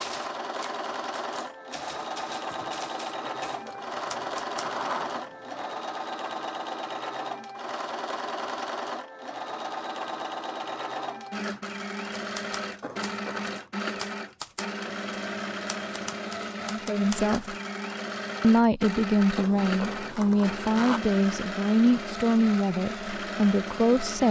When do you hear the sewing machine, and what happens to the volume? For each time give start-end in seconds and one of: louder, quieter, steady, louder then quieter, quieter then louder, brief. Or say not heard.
0.0-24.2 steady.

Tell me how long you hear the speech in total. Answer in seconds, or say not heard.
7 s.